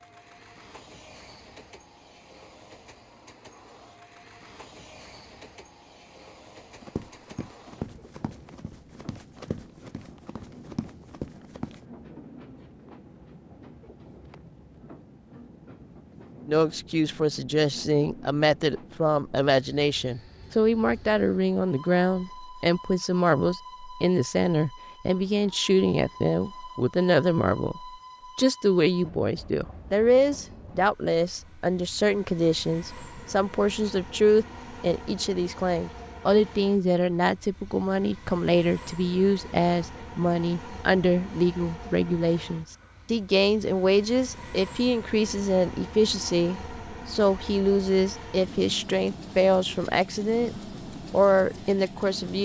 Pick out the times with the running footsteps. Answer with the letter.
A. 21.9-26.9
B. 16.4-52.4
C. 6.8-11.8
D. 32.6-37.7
C.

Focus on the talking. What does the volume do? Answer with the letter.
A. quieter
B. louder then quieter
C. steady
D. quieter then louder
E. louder
C.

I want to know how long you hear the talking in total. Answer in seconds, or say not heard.
36 s.